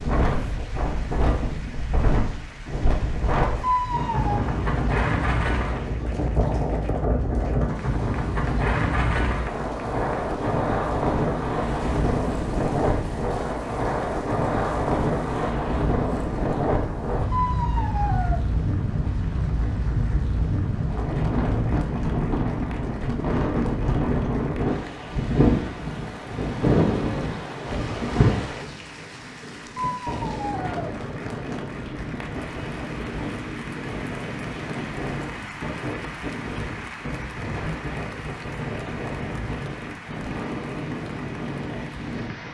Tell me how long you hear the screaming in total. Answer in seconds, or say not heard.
3 s.